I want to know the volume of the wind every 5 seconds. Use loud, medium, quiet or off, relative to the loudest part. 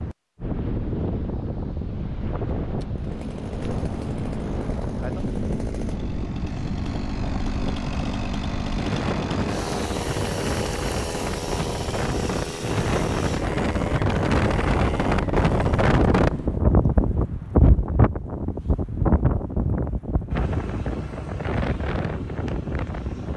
medium, medium, loud, loud, medium.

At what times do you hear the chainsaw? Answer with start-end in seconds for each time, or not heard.
3.0-15.9.